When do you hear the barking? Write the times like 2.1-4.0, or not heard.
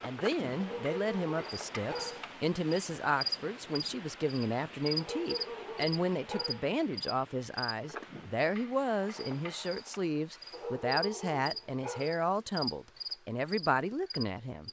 0.6-2.2, 5.0-6.7, 10.5-12.2.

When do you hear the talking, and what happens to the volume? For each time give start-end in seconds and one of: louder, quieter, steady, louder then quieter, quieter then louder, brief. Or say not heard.
0.0-14.6 steady.